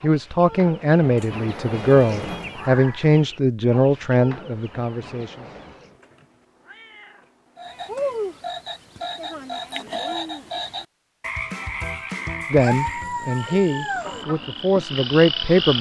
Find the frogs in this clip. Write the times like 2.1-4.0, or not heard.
7.5-15.7.